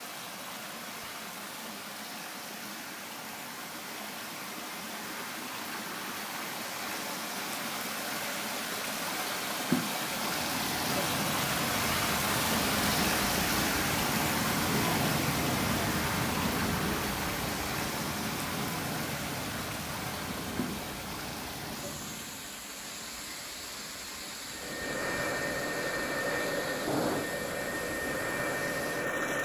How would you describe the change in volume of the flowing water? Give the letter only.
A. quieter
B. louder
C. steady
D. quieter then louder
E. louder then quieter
E.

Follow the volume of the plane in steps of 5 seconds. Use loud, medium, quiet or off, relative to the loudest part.
off, off, loud, loud, medium, loud.